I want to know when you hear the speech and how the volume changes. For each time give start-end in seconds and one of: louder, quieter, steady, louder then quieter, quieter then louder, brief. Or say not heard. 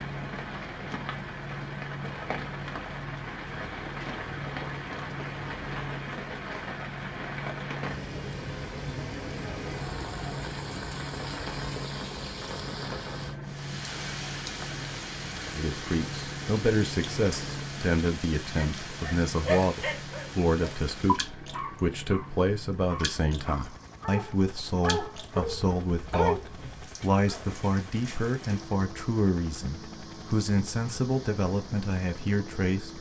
15.5-32.9 steady.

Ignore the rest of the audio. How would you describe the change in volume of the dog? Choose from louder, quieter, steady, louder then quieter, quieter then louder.
quieter then louder.